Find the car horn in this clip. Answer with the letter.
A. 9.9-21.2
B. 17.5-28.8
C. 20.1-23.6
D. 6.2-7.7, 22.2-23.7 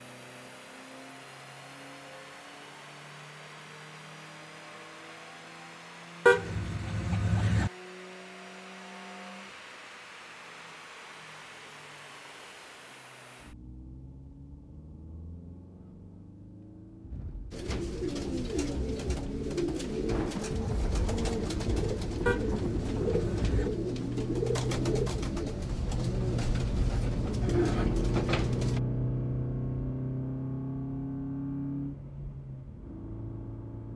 D.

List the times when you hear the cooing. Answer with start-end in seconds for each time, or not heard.
17.5-28.8.